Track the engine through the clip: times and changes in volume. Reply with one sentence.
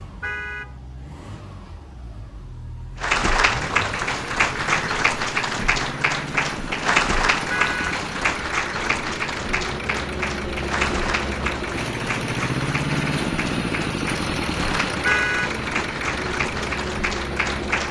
The engine can be heard from 0.0 to 17.8 s, getting louder.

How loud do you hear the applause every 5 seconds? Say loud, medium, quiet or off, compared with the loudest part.
loud, loud, medium, medium.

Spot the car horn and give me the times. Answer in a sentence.
You can hear the car horn from 0.2 to 0.8 s, from 7.5 to 8.0 s and from 15.1 to 15.6 s.